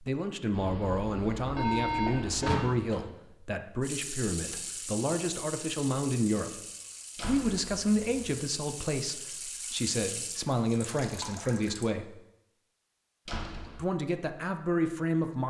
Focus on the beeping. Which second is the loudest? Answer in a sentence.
The volume of the beeping peaks at 2 seconds.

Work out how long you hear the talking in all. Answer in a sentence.
You can hear the talking for 13 seconds altogether.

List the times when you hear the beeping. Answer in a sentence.
The beeping can be heard from 0.5 to 2.5 s.